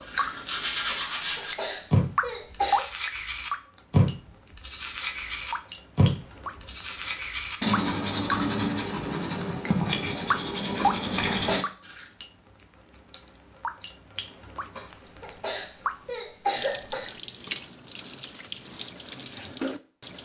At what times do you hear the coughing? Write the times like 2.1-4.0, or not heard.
0.9-2.9, 10.8-11.7, 14.8-17.1.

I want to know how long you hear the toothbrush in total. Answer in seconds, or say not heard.
12 s.